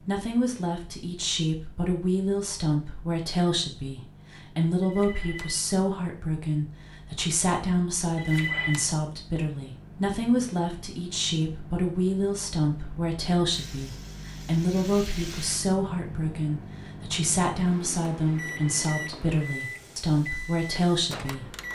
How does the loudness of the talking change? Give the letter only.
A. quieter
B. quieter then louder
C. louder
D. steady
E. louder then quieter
D.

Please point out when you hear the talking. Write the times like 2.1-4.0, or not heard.
0.0-21.6.